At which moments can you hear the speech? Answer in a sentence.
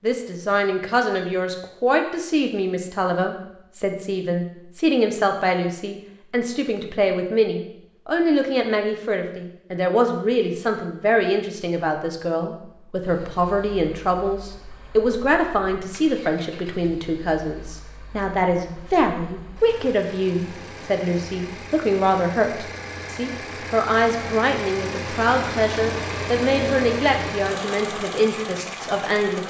You can hear the speech from 0.0 to 29.4 s.